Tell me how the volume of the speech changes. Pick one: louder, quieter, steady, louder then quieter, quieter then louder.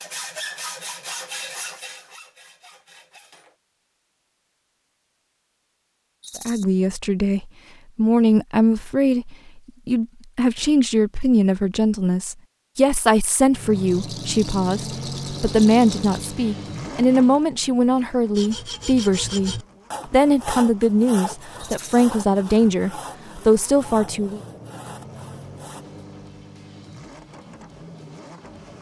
steady.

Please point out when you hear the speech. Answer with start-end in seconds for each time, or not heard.
6.3-24.4.